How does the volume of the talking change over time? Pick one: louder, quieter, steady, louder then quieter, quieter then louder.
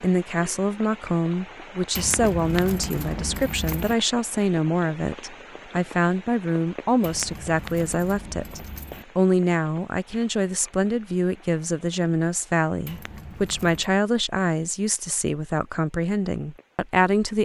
steady.